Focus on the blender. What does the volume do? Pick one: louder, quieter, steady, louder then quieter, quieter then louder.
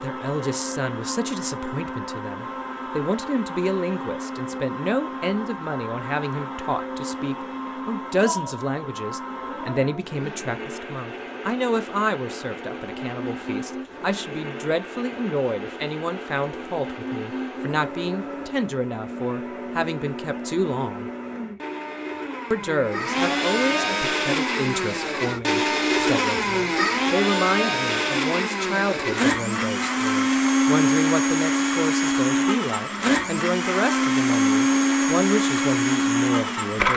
louder.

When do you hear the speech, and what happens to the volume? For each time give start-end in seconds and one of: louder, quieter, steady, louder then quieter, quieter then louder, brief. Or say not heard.
0.0-21.1 steady
22.5-36.9 steady.